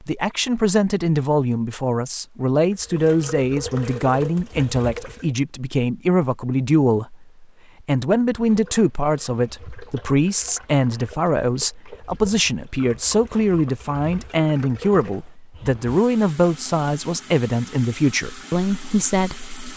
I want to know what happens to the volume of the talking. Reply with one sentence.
The volume of the talking stays about the same.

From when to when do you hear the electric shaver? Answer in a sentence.
The electric shaver can't be heard in this clip.